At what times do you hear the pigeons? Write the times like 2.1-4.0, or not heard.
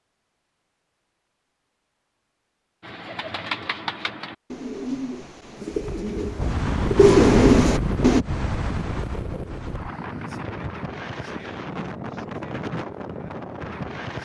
2.8-8.2.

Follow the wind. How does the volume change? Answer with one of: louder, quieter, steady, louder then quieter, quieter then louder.
quieter.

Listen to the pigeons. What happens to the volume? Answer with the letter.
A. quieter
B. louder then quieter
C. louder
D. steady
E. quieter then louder
C.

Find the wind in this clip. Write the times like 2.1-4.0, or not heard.
5.7-14.2.